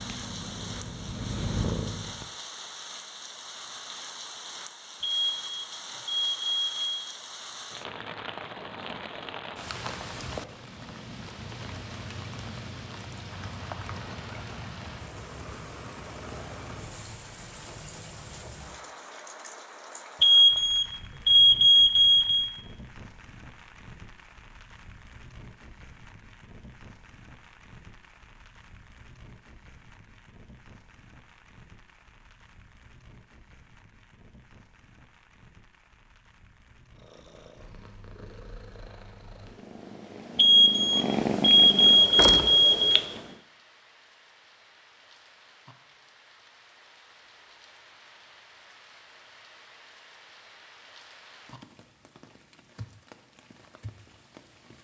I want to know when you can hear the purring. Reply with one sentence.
You can hear the purring from 0.0 to 2.3 s and from 37.0 to 43.4 s.